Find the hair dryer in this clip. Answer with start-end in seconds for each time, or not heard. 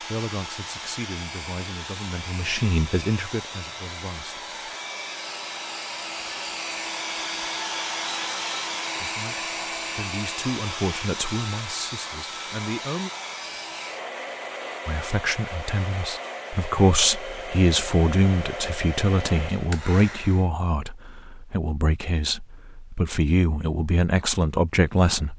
0.0-20.5.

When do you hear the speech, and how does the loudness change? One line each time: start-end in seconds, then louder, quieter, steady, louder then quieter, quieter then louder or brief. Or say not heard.
0.0-4.5 louder then quieter
9.0-13.1 louder then quieter
14.8-25.3 quieter then louder.